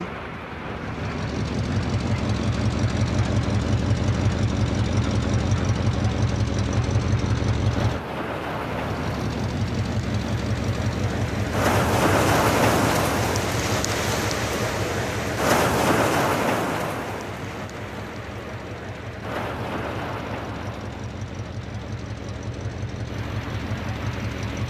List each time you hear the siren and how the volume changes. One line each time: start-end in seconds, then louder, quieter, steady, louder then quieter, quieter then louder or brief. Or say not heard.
not heard.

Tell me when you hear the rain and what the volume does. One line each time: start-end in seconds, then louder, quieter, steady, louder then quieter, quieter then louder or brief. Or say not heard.
0.0-24.6 louder then quieter.